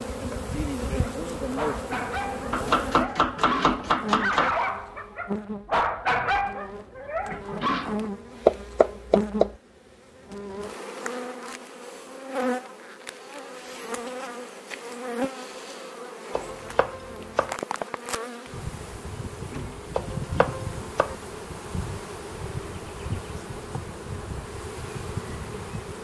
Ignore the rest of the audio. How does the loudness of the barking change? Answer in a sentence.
The volume of the barking goes up, then down.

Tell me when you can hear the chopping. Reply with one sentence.
You can hear the chopping from 2.5 to 4.5 s, from 8.4 to 9.5 s, from 16.4 to 17.6 s and from 19.9 to 21.1 s.